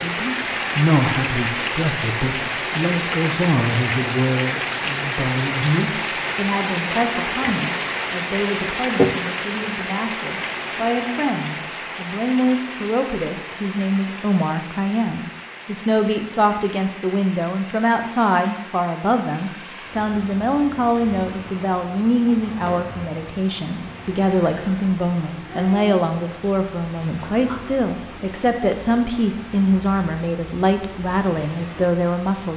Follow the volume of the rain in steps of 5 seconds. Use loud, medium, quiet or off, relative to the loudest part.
loud, loud, medium, quiet, quiet, quiet, quiet.